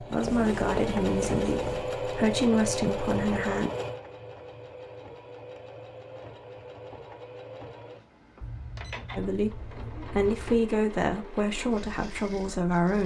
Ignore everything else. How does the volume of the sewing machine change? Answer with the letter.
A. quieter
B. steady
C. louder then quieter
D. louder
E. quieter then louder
A.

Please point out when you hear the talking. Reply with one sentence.
The talking can be heard from 0.0 to 3.7 s and from 9.2 to 13.0 s.